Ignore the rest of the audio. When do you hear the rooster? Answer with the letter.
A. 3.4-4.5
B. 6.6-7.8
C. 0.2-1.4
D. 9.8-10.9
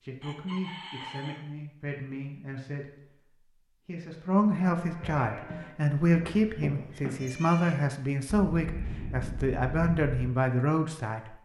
C.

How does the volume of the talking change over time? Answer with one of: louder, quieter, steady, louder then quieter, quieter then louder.
louder.